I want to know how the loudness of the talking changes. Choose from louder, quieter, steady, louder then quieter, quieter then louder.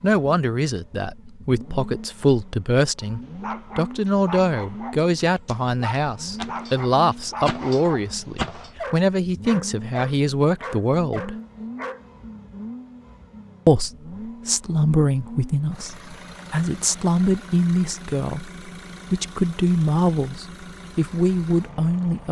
steady.